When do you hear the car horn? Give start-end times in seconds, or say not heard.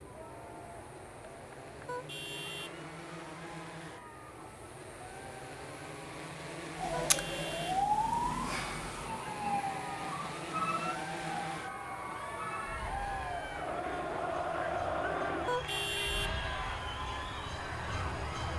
1.9-2.9, 7.0-7.8, 15.4-16.6.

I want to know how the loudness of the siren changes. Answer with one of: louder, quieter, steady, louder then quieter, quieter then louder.
quieter then louder.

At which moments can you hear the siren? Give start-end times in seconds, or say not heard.
6.8-18.5.